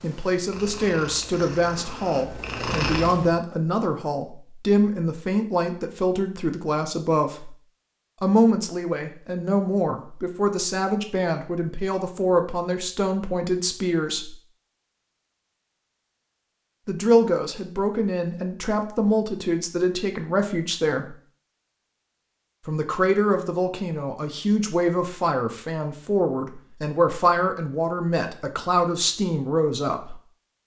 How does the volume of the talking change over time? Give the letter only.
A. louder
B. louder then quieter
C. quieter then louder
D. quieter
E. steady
E.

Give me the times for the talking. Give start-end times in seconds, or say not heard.
0.0-7.5, 8.2-14.3, 16.9-21.1, 22.6-30.1.